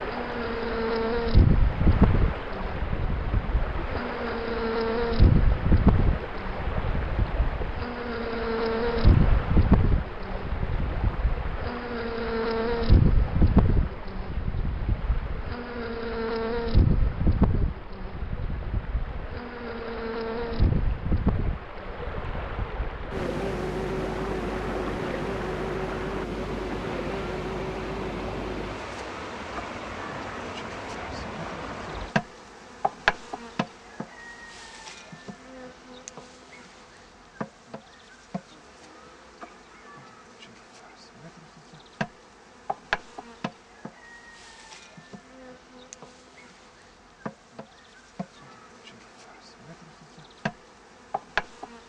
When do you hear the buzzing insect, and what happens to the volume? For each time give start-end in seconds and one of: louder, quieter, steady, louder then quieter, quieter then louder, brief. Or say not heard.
0.0-51.8 quieter.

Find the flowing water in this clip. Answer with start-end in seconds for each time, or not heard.
0.0-32.1.